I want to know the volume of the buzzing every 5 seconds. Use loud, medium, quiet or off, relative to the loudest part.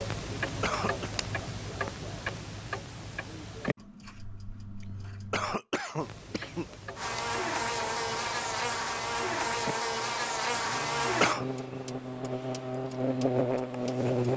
off, loud, loud.